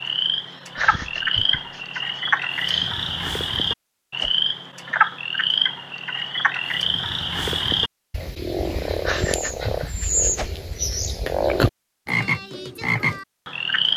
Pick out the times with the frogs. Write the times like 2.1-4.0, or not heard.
0.0-13.9.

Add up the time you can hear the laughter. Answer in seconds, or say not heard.
5 s.